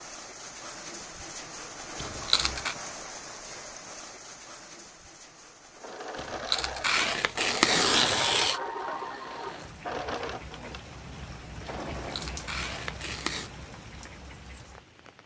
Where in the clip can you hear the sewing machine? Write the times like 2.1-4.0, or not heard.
5.8-12.5.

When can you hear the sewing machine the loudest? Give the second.
8 s.